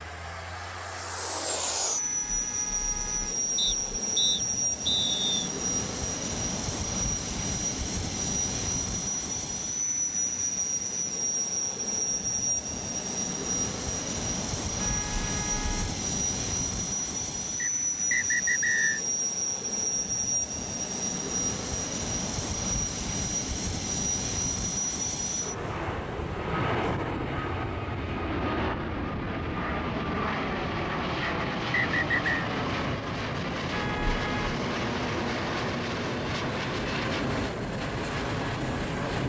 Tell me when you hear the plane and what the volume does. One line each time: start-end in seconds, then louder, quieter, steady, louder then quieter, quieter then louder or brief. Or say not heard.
0.0-39.2 steady.